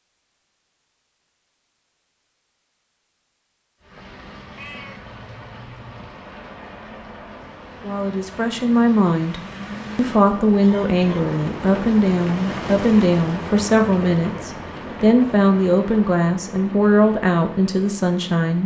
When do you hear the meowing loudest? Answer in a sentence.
The volume of the meowing peaks at 5 seconds.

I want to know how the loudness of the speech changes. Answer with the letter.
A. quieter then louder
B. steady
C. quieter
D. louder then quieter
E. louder
B.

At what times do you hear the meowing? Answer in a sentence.
The meowing can be heard from 4.5 to 6.2 s.